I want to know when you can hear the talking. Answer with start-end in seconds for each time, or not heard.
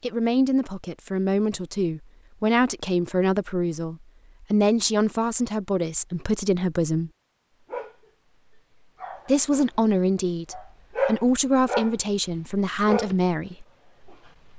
0.0-7.1, 9.2-13.7.